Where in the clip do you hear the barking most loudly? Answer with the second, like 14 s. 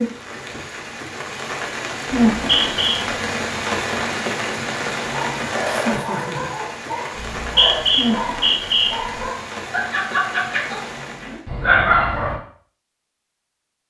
12 s.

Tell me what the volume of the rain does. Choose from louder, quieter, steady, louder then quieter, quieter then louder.
quieter.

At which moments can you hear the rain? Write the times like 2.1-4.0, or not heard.
0.0-11.4.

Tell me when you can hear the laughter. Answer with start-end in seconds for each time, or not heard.
5.8-6.5.